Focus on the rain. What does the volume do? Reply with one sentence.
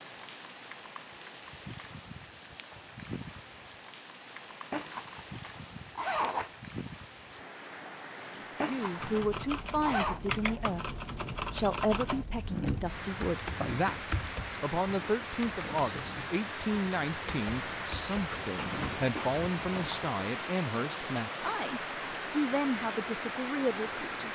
The volume of the rain goes up.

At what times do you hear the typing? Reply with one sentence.
You can hear the typing from 8.9 to 20.1 s.